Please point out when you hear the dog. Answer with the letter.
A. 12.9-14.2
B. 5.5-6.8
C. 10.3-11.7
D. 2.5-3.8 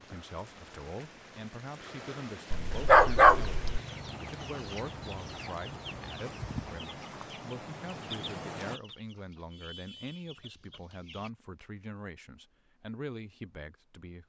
D.